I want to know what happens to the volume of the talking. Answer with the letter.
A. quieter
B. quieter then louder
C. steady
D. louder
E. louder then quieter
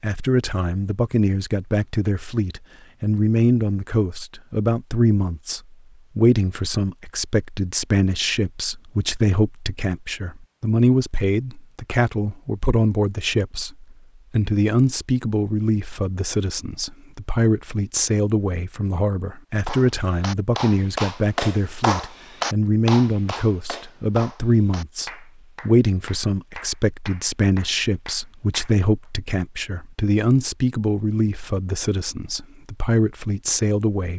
C.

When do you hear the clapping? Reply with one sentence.
The clapping can be heard from 19.6 to 29.1 s.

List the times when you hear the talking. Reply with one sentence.
You can hear the talking from 0.0 to 34.1 s.